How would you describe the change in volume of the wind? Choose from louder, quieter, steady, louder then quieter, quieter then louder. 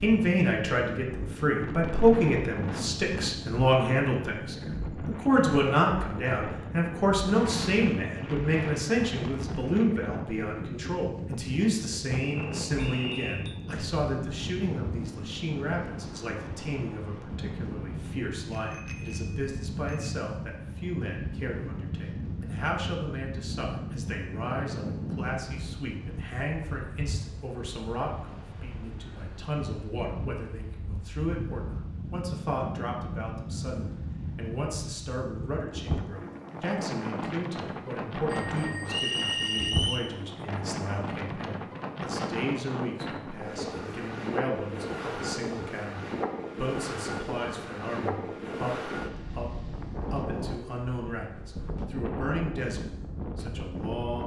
steady.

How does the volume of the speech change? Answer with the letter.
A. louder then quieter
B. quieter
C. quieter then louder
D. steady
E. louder
B.